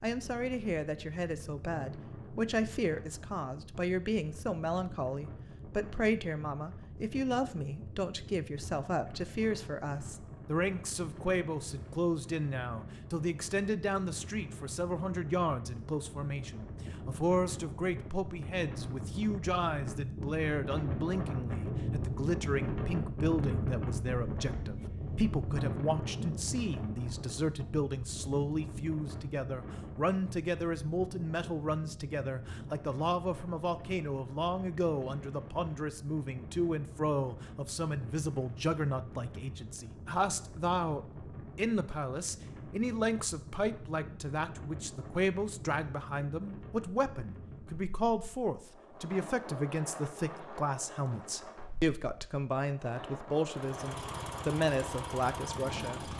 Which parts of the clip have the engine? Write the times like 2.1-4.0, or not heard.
53.5-56.1.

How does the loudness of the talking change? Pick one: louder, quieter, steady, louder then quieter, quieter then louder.
steady.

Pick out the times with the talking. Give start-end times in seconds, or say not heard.
0.0-56.1.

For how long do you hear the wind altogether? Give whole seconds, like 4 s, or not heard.
56 s.